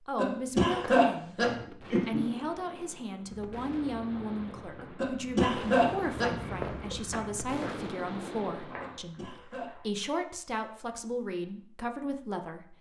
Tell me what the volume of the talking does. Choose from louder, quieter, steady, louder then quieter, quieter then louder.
steady.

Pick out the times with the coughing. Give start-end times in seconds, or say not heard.
0.1-2.2, 5.0-6.3, 8.8-9.7.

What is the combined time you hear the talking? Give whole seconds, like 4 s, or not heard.
13 s.